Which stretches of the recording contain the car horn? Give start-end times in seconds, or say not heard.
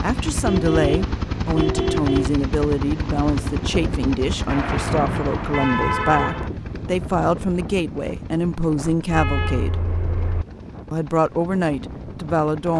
0.4-2.4, 4.5-6.5, 8.9-10.4.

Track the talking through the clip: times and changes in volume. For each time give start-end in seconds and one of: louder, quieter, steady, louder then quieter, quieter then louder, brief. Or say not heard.
0.0-9.8 steady
10.9-12.7 brief.